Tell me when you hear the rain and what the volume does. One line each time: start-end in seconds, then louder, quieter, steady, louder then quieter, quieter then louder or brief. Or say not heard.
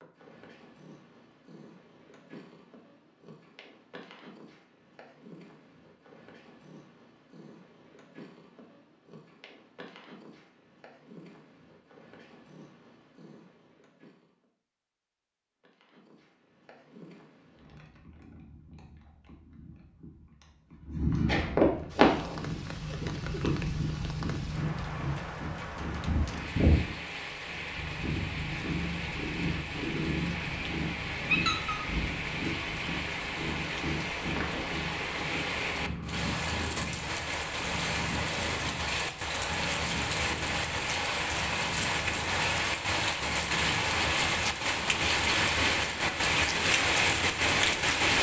21.9-48.1 louder.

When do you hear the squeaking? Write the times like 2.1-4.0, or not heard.
31.3-31.8.